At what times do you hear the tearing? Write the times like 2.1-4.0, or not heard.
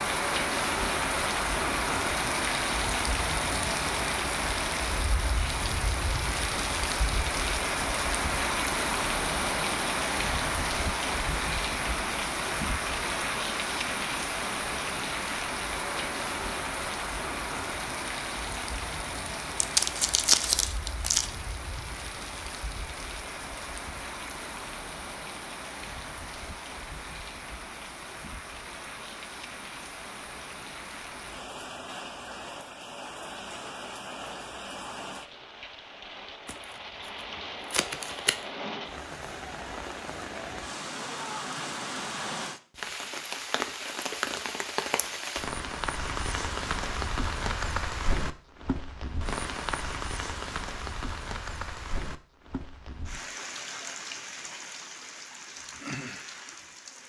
19.6-21.3, 36.5-38.5.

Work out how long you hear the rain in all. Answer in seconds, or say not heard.
57 s.